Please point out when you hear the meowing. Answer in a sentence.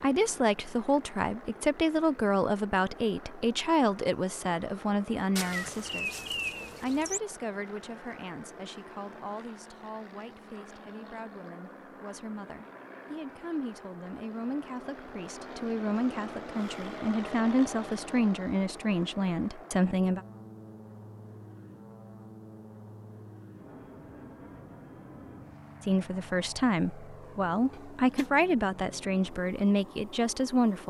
You can hear the meowing from 5.3 to 7.2 s and from 27.7 to 28.3 s.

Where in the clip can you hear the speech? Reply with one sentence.
You can hear the speech from 0.0 to 20.2 s and from 25.9 to 30.8 s.